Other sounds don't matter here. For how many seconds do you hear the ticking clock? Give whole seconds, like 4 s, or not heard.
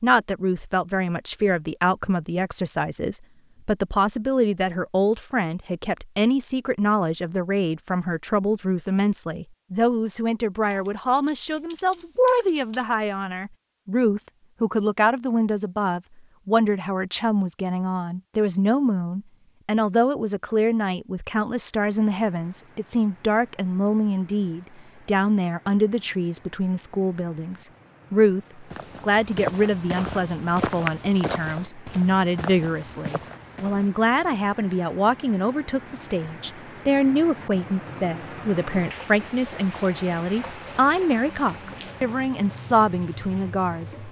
not heard.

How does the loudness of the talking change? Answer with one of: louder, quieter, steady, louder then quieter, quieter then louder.
steady.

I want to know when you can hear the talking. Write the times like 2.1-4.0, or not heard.
0.0-44.0.